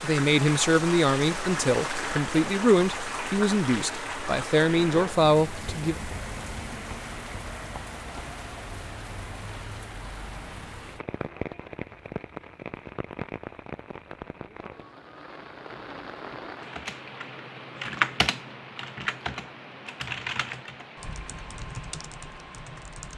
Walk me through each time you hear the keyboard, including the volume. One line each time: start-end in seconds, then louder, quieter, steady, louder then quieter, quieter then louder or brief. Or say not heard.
16.7-23.1 quieter.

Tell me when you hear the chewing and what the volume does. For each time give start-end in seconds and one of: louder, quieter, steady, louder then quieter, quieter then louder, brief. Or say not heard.
not heard.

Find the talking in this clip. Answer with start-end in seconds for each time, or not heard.
0.0-6.0.